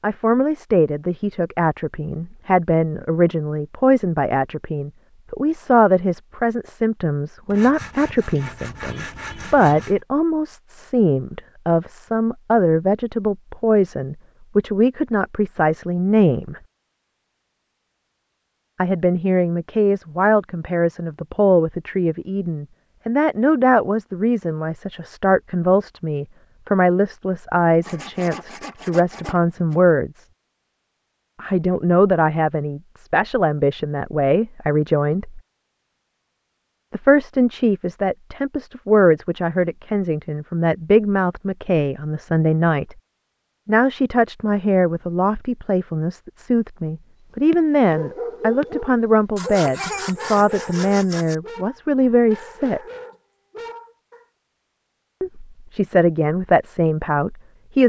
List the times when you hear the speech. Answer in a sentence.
You can hear the speech from 0.0 to 16.6 s, from 18.8 to 30.2 s, from 31.4 to 35.4 s, from 36.9 to 43.0 s, from 43.6 to 52.8 s and from 55.2 to 57.8 s.